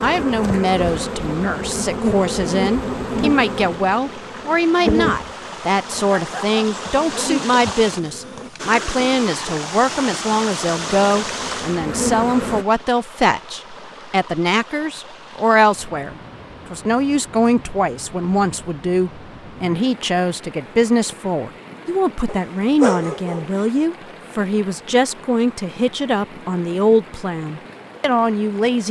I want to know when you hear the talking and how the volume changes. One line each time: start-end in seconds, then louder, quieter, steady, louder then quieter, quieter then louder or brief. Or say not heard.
0.0-28.8 steady.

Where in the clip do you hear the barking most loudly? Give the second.
23 s.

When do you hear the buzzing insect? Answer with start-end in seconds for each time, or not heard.
0.0-8.5, 10.8-12.7.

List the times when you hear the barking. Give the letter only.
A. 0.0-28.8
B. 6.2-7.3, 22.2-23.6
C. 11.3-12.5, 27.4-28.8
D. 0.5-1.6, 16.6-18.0
B.